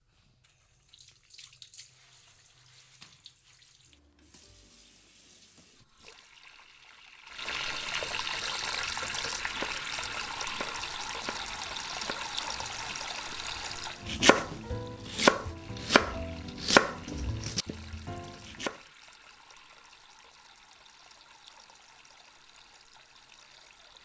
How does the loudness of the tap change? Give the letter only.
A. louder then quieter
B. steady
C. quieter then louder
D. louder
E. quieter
A.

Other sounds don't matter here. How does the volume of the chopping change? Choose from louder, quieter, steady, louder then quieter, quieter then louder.
quieter then louder.